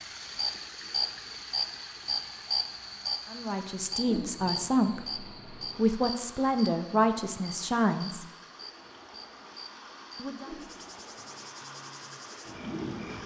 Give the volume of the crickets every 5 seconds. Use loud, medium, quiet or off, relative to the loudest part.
loud, medium, medium.